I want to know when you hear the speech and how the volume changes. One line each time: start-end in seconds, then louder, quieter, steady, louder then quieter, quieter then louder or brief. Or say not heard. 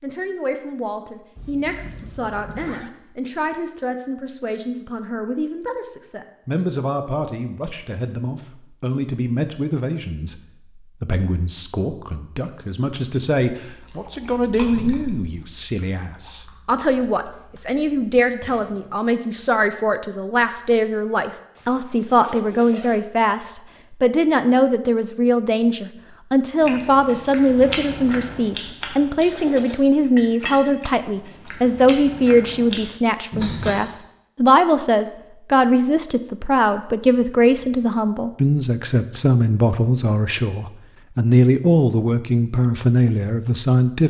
0.0-44.0 louder.